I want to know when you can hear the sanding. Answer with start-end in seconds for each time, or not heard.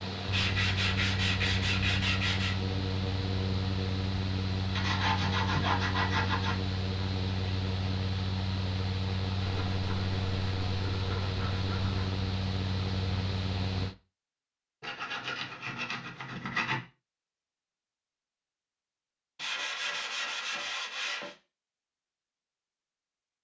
0.3-2.6, 4.8-6.5, 9.4-12.1, 14.8-16.8, 19.4-21.4.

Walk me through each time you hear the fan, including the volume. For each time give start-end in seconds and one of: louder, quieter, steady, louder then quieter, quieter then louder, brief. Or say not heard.
0.0-13.9 steady.